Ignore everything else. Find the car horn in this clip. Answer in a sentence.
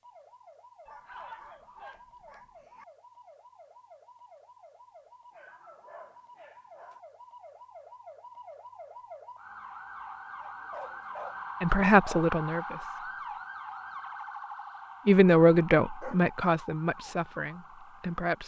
You can't hear the car horn here.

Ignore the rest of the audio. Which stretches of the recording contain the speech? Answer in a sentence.
The speech can be heard from 11.6 to 13.1 s and from 15.1 to 18.4 s.